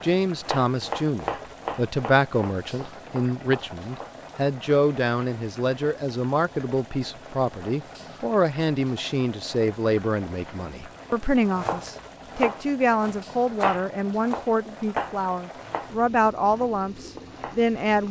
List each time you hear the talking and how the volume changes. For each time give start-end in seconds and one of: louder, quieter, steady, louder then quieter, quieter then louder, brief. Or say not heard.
0.0-18.0 steady.